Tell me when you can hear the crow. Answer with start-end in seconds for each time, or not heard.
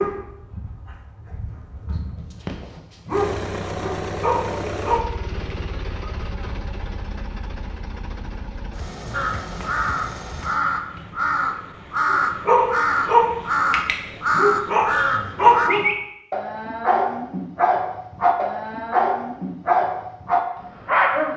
9.1-15.7.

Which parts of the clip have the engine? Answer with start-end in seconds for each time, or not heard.
3.0-10.7.